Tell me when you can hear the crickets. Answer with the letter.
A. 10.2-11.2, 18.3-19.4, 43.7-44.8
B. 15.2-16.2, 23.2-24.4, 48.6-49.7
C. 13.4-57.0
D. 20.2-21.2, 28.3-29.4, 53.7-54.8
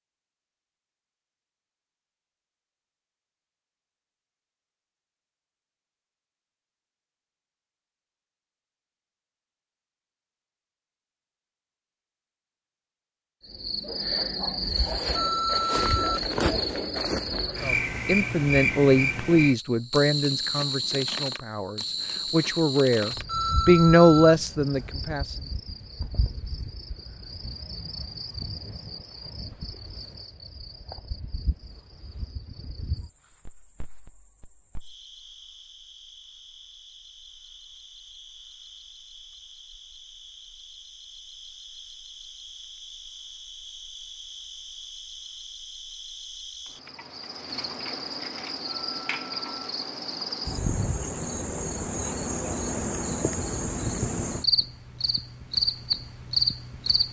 C.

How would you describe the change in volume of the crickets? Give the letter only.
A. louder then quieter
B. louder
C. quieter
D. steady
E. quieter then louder
E.